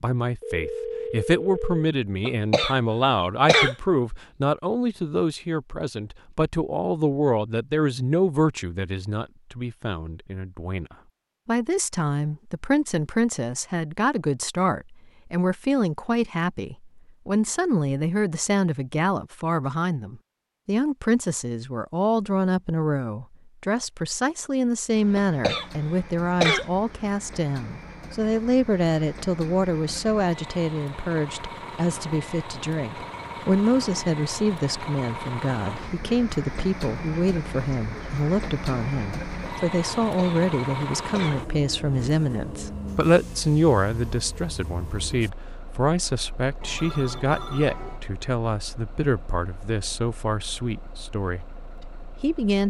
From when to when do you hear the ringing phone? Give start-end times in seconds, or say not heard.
0.4-1.9, 46.6-48.0.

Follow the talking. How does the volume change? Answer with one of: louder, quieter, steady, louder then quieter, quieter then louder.
steady.